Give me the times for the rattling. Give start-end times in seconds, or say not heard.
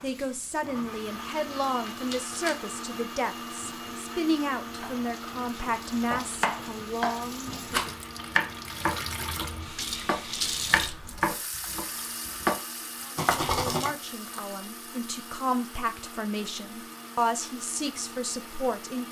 1.6-2.5, 7.7-8.1, 13.2-13.9.